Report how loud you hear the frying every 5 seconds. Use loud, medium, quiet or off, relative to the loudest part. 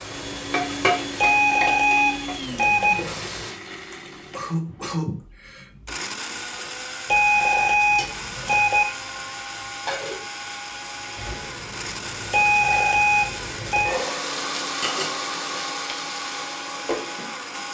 loud, medium, loud, loud.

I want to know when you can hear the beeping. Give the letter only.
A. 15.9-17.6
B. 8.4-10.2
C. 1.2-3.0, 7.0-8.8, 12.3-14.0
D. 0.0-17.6
C.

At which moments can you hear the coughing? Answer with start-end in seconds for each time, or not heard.
3.9-5.7.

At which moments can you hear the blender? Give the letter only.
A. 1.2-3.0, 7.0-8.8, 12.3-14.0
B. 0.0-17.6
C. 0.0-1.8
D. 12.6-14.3
B.